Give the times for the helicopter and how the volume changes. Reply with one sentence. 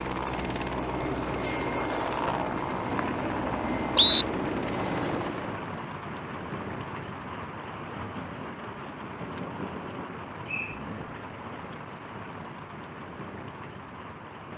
You can hear the helicopter from 0.0 to 5.7 s, at a steady volume.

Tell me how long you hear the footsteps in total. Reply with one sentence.
The footsteps can't be heard in this clip.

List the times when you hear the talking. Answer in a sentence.
The talking can be heard from 10.7 to 11.2 s.